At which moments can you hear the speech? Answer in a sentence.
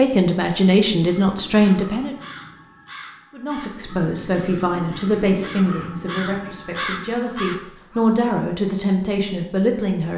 The speech can be heard from 0.0 to 2.1 s and from 3.3 to 10.1 s.